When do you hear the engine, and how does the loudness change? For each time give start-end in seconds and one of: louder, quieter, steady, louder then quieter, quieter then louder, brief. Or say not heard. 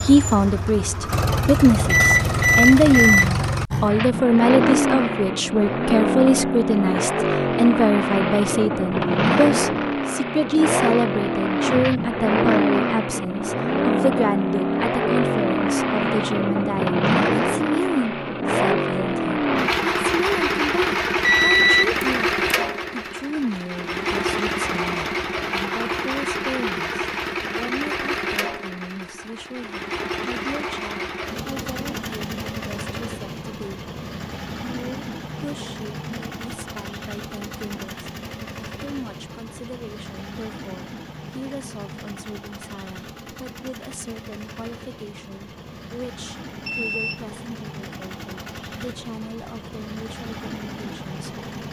0.0-51.6 quieter.